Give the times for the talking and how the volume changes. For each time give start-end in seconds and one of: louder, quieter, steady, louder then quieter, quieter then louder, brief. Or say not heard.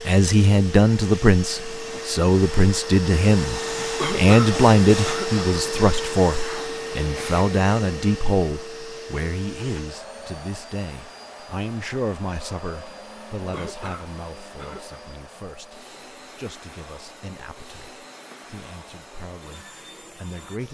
0.1-20.6 quieter.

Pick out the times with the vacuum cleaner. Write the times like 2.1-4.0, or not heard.
0.0-20.6.